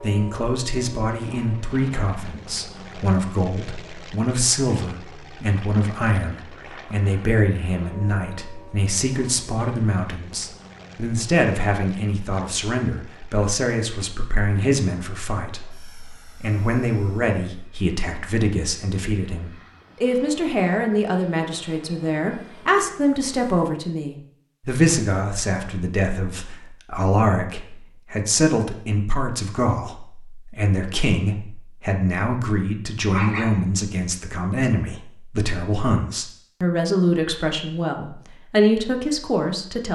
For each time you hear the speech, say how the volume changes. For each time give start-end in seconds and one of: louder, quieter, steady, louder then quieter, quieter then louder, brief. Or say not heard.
0.0-39.8 steady.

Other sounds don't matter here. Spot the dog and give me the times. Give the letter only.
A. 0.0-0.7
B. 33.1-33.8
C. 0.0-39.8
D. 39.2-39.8
B.